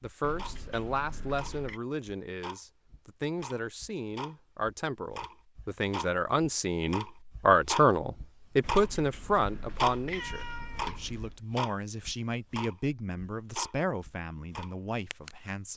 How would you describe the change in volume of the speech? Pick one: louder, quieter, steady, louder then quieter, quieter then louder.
louder then quieter.